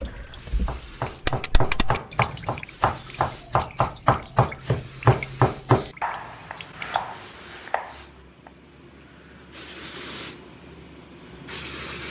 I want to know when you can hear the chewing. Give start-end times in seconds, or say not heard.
not heard.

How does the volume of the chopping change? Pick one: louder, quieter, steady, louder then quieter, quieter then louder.
louder then quieter.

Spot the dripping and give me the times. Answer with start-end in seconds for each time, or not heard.
0.0-7.2.